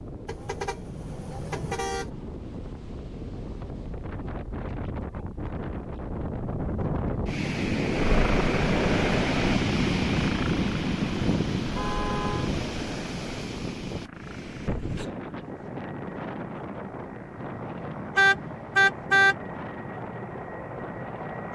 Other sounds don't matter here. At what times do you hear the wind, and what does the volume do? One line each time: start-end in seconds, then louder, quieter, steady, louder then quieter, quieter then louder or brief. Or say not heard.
0.0-21.5 louder then quieter.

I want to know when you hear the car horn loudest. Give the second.
19 s.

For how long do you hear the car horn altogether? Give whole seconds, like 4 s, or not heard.
4 s.